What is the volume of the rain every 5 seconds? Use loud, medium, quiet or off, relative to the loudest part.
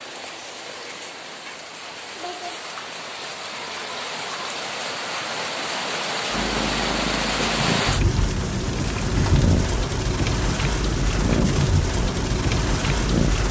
medium, loud, loud.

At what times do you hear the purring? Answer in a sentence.
You can hear the purring from 6.3 to 13.4 s.